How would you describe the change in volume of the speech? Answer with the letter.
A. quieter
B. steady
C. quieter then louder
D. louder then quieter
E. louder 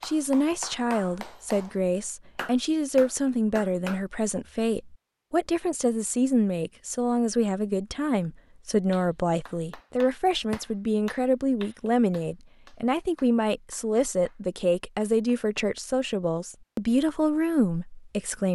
B.